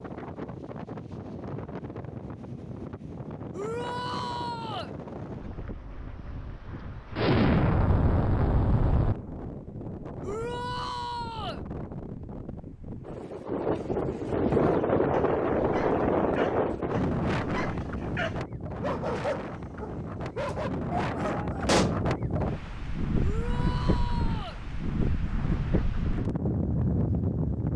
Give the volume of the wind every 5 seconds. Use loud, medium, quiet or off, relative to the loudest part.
medium, quiet, loud, loud, loud, loud.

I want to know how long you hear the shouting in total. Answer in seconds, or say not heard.
4 s.